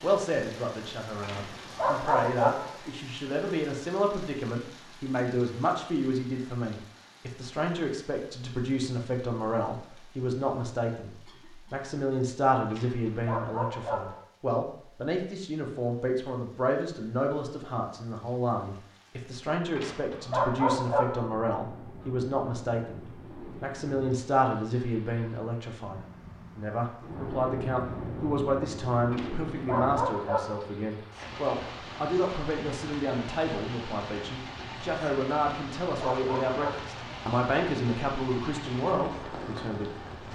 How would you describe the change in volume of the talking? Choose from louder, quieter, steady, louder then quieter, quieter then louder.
steady.